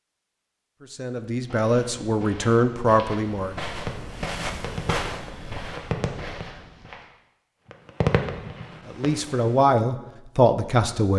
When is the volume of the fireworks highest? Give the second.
8 s.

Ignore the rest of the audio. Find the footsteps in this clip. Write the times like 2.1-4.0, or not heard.
1.1-7.0.